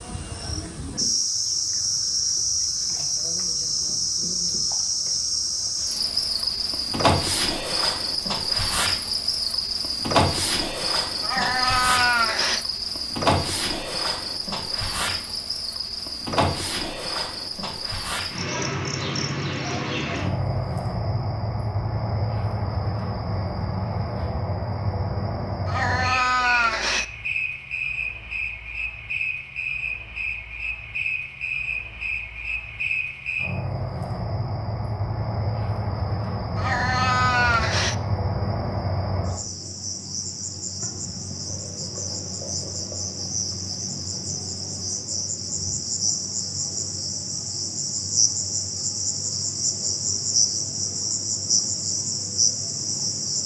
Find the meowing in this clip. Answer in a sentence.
The meowing can be heard from 11.2 to 12.7 s, from 25.6 to 27.1 s and from 36.5 to 38.0 s.